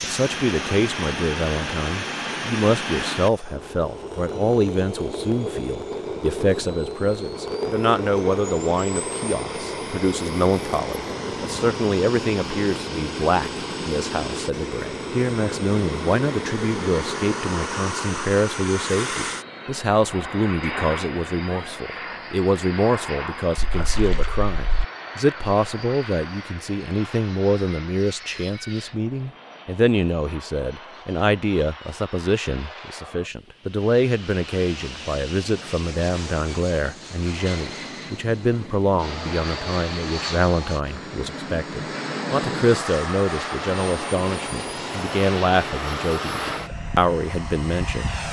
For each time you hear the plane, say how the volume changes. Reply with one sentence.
The plane can be heard from 0.0 to 48.2 s, getting quieter then louder.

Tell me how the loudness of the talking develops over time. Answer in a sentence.
The loudness of the talking stays about the same.